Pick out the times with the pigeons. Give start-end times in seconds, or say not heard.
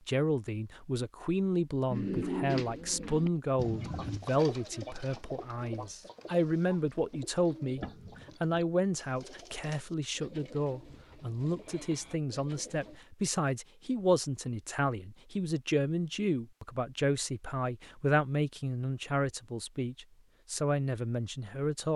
1.9-13.0.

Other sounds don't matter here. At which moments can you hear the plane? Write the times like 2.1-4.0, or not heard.
not heard.